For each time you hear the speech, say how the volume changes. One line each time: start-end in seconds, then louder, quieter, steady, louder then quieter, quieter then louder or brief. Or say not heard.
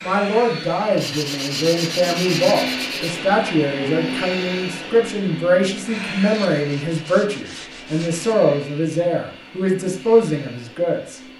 0.0-11.2 steady.